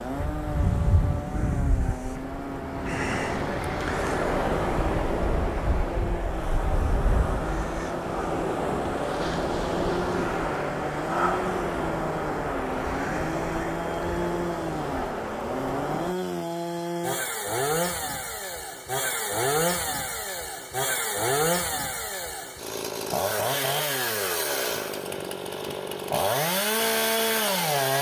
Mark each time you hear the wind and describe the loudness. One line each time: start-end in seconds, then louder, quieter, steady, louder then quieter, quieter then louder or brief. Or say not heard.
0.0-16.1 steady.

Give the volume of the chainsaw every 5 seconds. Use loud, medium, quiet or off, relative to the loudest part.
medium, medium, medium, loud, loud, loud.